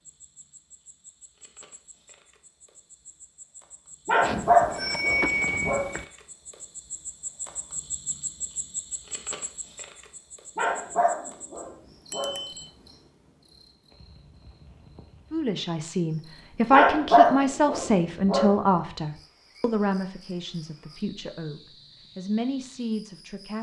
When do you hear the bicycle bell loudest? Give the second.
5 s.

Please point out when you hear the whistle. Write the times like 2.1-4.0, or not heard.
not heard.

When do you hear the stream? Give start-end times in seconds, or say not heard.
not heard.